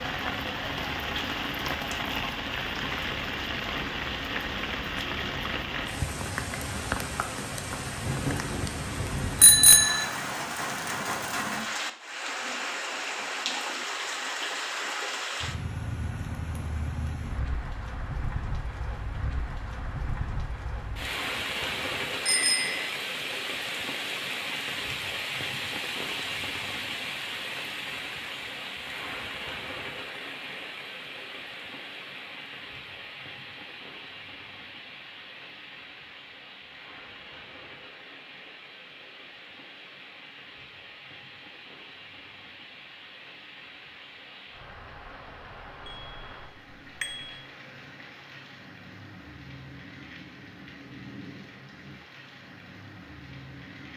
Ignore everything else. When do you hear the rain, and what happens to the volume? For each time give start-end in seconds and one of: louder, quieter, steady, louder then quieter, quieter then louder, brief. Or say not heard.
0.0-53.9 quieter.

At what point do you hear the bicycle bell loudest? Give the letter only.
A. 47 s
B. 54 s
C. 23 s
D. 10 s
D.